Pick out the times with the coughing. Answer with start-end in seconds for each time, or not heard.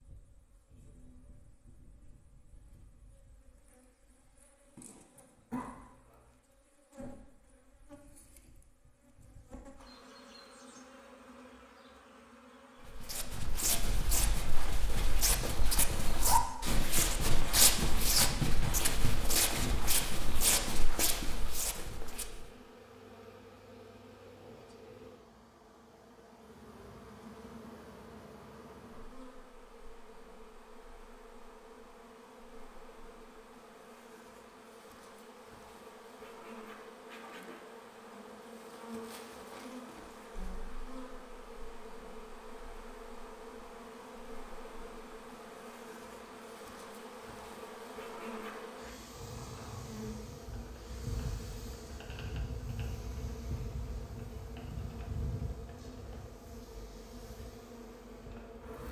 5.5-6.3.